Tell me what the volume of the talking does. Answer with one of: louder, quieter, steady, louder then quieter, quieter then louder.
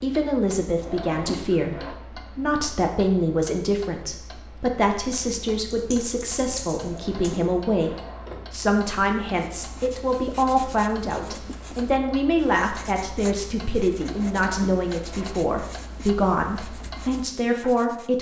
steady.